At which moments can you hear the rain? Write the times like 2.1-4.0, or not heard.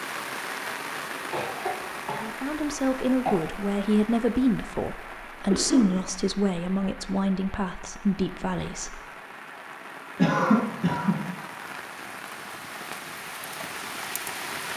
0.0-14.7.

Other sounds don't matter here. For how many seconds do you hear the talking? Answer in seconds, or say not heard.
7 s.